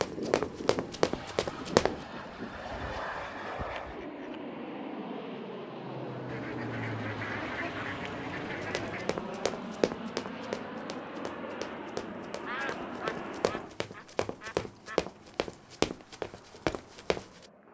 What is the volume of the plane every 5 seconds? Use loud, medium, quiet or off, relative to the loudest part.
loud, loud, loud, quiet.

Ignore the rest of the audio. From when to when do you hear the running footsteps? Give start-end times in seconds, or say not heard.
0.0-1.9, 8.4-17.4.